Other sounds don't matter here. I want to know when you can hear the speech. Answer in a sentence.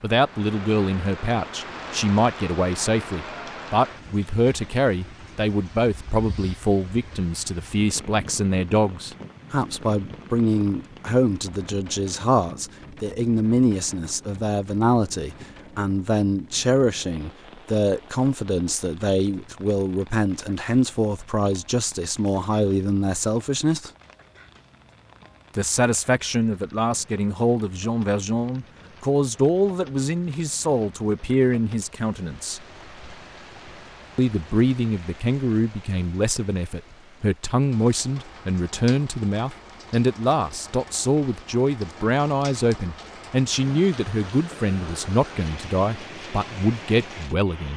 You can hear the speech from 0.0 to 23.9 s, from 25.6 to 32.6 s and from 34.1 to 47.7 s.